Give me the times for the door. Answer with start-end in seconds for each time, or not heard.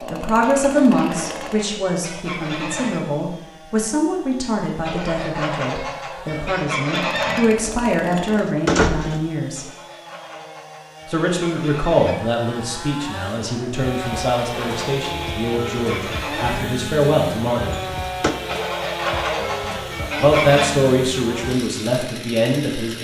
8.2-9.2, 17.9-18.4.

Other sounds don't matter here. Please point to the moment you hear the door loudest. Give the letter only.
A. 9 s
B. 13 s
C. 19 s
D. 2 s
A.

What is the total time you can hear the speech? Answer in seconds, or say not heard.
19 s.